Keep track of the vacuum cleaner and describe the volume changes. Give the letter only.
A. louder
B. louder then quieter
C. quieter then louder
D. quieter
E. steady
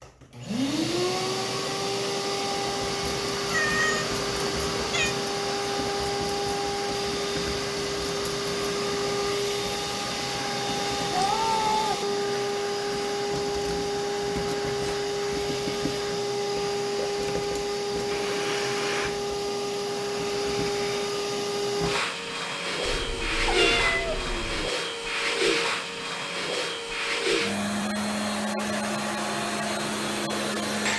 E.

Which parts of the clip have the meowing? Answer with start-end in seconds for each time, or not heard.
3.5-5.2, 11.1-12.0, 22.8-24.7.